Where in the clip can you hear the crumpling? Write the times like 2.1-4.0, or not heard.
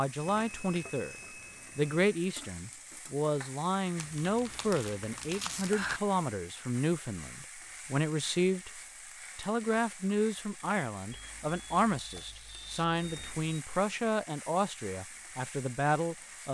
4.0-6.0.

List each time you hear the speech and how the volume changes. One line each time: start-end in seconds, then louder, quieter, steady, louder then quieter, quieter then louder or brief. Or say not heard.
0.0-1.1 brief
1.8-16.4 steady.